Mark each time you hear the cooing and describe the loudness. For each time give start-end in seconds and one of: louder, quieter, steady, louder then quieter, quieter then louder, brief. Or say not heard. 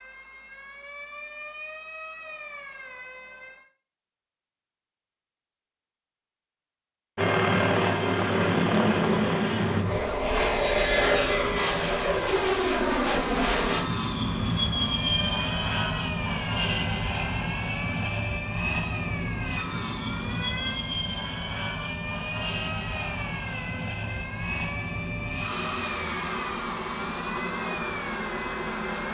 not heard.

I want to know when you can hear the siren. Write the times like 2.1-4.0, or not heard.
0.0-3.6, 14.9-29.0.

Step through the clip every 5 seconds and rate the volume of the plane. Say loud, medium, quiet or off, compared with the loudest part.
off, loud, loud, medium, medium, medium.